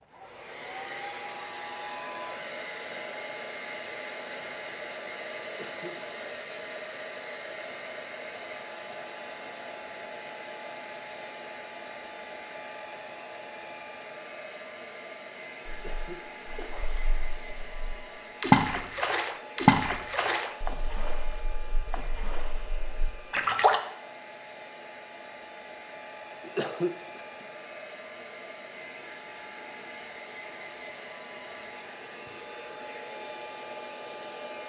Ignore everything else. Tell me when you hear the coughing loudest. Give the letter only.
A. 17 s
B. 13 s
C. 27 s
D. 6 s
C.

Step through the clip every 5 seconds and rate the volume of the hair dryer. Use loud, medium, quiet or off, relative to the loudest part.
loud, loud, loud, medium, medium, medium, loud.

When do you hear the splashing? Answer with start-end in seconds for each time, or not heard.
15.7-23.8.